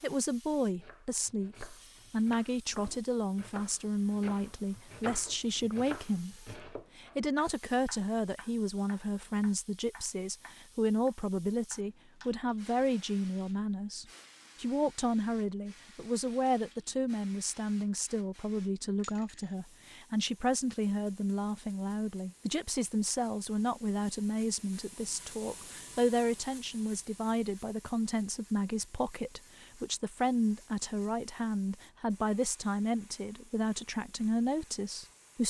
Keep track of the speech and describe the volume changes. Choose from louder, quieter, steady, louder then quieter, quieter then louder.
steady.